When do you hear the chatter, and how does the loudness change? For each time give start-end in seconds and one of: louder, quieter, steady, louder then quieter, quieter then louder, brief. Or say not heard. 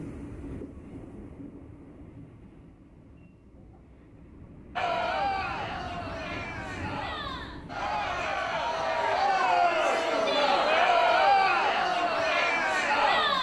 4.8-13.3 louder.